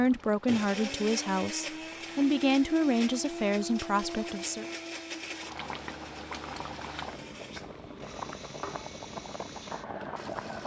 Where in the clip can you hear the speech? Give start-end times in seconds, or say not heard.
0.0-4.7.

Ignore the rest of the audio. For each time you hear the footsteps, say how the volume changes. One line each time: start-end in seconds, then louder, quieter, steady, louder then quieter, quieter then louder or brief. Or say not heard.
not heard.